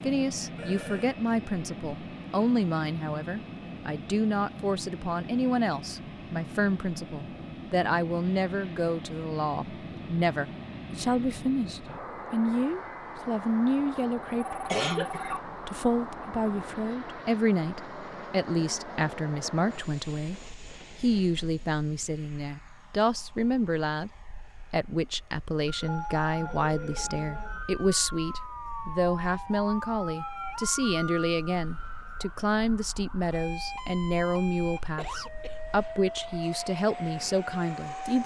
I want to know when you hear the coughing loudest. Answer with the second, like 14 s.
15 s.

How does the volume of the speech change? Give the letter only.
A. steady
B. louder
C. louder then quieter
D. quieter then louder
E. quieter
A.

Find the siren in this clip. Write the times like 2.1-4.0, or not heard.
25.8-38.2.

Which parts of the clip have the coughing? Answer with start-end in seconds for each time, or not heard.
14.7-15.4, 35.0-35.6.